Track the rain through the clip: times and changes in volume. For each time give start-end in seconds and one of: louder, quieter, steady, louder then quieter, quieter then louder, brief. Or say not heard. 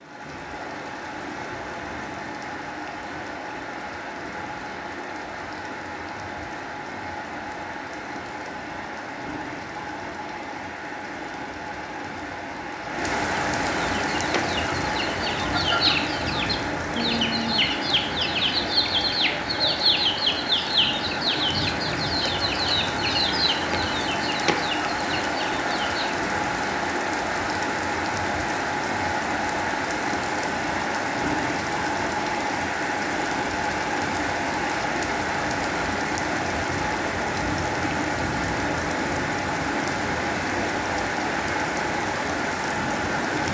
0.0-43.4 louder.